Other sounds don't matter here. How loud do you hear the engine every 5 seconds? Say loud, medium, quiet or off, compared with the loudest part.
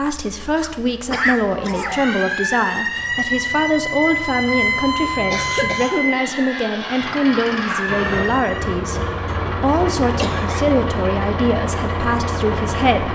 quiet, loud, loud.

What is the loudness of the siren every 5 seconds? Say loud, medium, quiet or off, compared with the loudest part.
loud, loud, off.